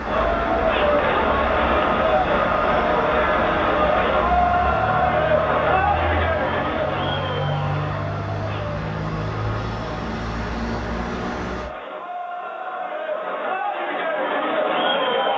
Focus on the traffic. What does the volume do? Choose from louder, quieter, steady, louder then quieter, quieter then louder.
steady.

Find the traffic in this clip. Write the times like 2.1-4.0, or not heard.
0.0-11.7.